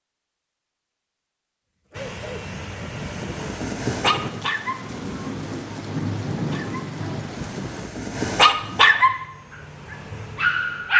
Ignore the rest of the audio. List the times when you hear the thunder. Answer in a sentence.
You can hear the thunder from 3.9 to 7.9 s.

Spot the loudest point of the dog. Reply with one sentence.
The volume of the dog peaks at 9 seconds.